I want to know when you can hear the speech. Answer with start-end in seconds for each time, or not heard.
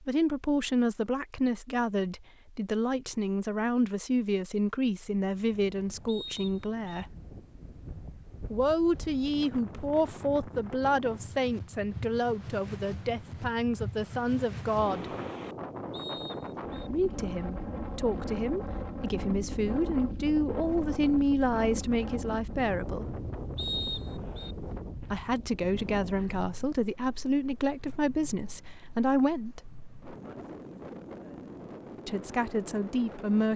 0.0-7.2, 8.5-15.1, 16.9-23.1, 25.1-29.7, 32.0-33.5.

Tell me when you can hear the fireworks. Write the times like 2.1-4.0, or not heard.
not heard.